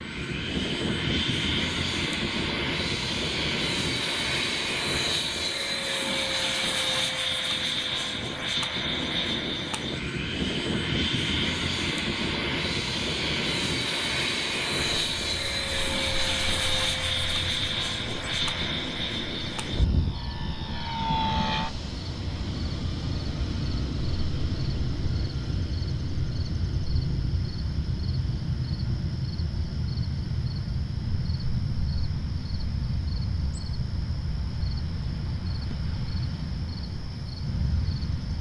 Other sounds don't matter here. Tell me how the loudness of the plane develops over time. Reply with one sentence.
The loudness of the plane goes down.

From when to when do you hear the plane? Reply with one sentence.
You can hear the plane from 0.0 to 38.3 s.